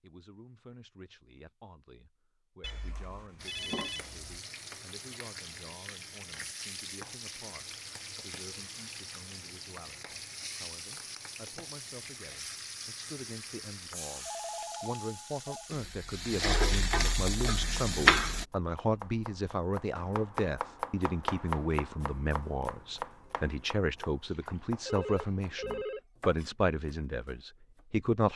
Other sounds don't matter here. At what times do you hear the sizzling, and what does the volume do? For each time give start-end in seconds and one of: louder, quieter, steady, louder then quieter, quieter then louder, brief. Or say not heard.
3.4-18.4 louder.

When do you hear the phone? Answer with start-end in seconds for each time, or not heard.
2.6-4.3, 14.2-15.7, 24.2-26.0.